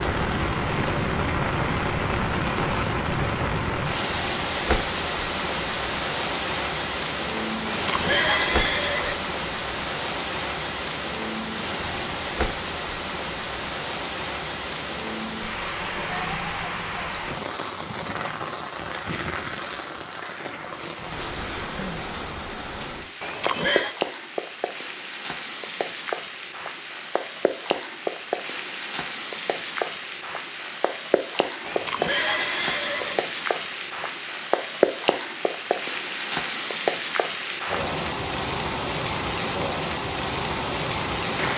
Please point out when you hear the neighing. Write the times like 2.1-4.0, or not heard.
7.7-9.2, 23.2-23.9, 31.6-33.2.